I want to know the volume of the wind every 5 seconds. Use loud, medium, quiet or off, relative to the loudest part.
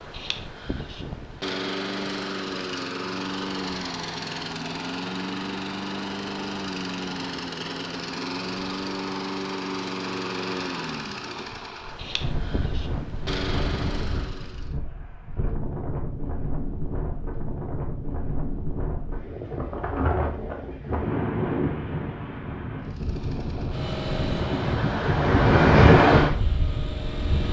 off, off, quiet, quiet, medium, loud.